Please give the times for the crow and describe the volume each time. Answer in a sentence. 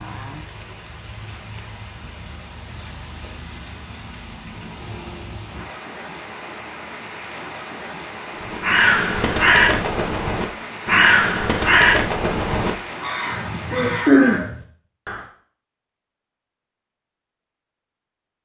The crow can be heard from 8.4 to 15.2 s, getting quieter then louder.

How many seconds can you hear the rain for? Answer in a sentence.
The rain can be heard for 14 seconds in total.